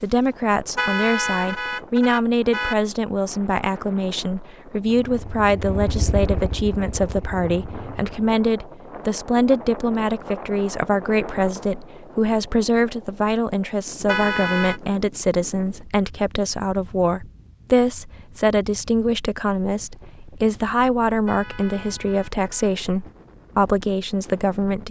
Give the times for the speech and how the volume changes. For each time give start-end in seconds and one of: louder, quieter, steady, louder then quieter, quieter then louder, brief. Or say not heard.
0.0-24.8 steady.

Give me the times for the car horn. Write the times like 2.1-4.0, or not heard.
0.8-2.8, 14.1-14.8, 21.2-22.7.